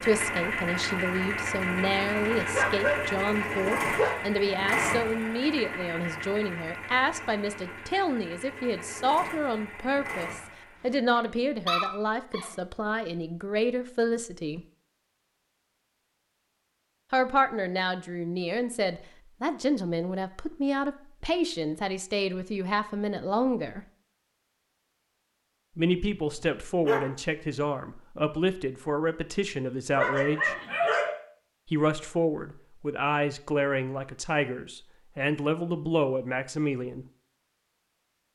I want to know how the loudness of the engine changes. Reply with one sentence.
The loudness of the engine goes down.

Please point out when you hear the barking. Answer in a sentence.
You can hear the barking from 2.5 to 4.2 s, from 11.2 to 12.5 s, from 25.9 to 27.1 s and from 29.9 to 31.1 s.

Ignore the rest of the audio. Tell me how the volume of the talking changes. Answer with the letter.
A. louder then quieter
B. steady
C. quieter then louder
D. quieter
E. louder
B.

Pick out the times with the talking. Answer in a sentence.
The talking can be heard from 0.0 to 14.6 s, from 17.1 to 23.9 s, from 25.8 to 30.6 s and from 31.7 to 37.0 s.